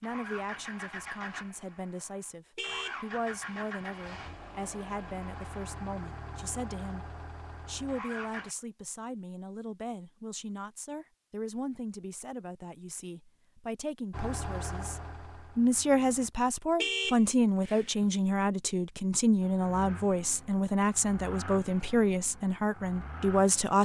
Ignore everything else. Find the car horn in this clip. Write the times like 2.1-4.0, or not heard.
2.5-3.6, 16.8-18.1.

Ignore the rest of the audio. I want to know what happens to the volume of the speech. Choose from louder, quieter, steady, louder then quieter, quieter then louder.
louder.